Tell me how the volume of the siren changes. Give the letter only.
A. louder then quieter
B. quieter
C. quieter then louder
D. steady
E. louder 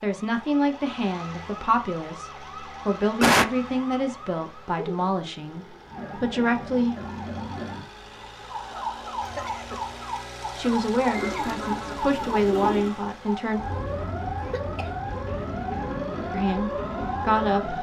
E.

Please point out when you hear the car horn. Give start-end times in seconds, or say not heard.
not heard.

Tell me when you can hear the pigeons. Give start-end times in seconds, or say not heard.
11.1-12.9.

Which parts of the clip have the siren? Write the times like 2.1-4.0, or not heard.
0.0-17.7.